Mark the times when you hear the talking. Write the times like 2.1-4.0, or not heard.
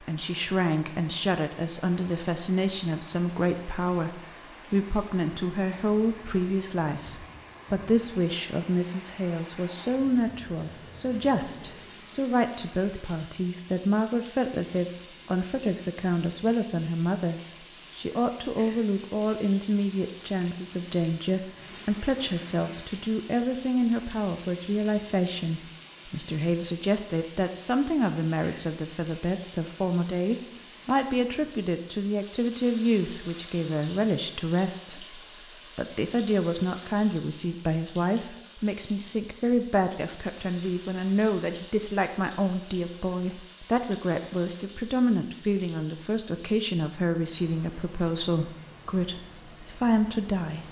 0.0-50.6.